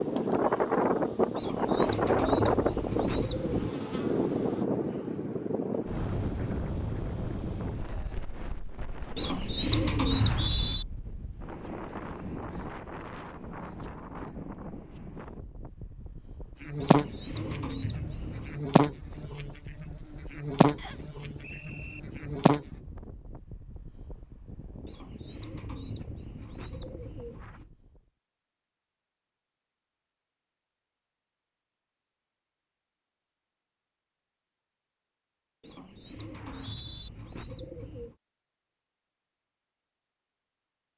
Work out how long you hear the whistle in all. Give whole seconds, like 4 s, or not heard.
3 s.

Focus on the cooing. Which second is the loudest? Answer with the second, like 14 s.
10 s.